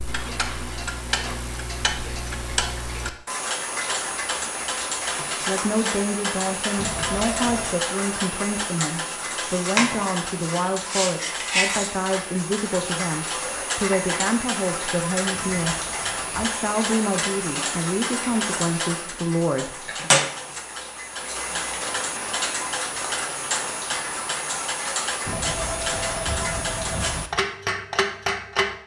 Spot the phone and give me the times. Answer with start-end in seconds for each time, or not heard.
6.8-7.8, 15.3-16.6, 25.2-27.2.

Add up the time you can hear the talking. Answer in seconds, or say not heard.
14 s.